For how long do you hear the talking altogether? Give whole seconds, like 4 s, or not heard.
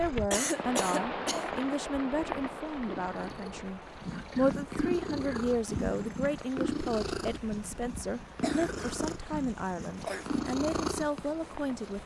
12 s.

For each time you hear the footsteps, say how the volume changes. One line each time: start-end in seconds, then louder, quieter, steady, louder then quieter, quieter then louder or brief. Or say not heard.
not heard.